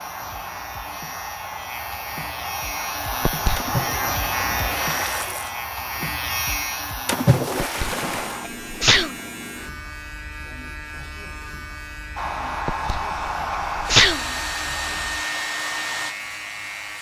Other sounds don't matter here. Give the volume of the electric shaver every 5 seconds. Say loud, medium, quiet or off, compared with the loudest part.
loud, loud, medium, loud.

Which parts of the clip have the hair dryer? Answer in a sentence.
The hair dryer can be heard from 0.0 to 8.5 s and from 12.2 to 16.9 s.